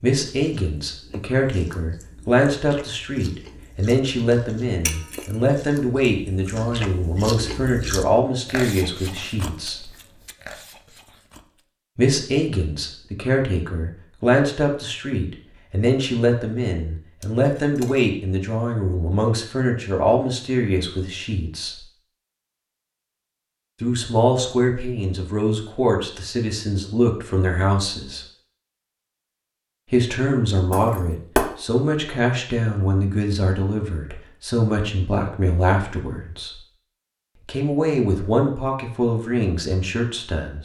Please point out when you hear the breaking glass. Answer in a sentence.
You can hear the breaking glass from 4.8 to 5.3 s, from 17.2 to 18.1 s and from 30.7 to 31.5 s.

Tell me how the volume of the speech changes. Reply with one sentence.
The volume of the speech stays about the same.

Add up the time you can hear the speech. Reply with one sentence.
You can hear the speech for 34 seconds altogether.